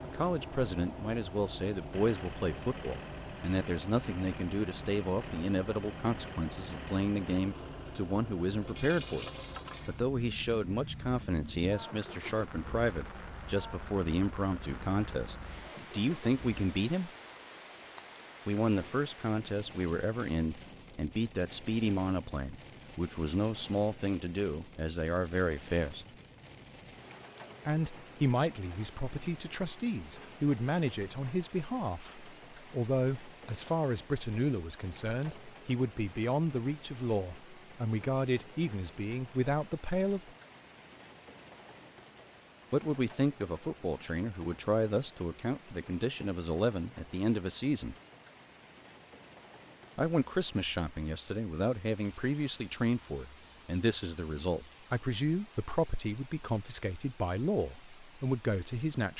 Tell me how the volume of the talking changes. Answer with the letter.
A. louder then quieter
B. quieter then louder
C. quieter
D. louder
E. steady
E.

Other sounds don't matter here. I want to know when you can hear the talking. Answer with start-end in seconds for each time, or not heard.
0.0-17.1, 18.4-26.1, 27.6-40.3, 42.7-48.0, 50.0-59.1.